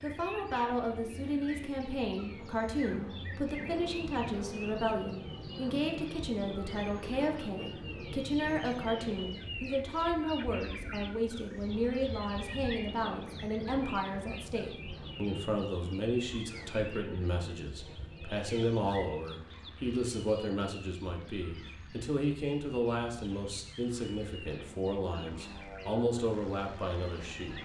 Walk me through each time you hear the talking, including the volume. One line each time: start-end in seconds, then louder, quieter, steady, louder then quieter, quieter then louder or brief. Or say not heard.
0.0-27.5 steady.